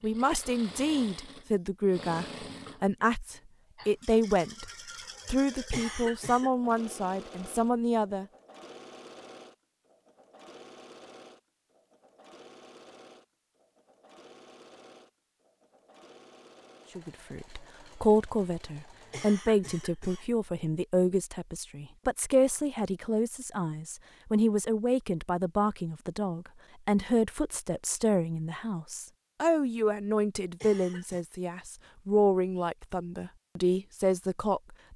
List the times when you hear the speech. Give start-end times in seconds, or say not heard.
0.0-4.7, 5.2-8.2, 16.9-34.9.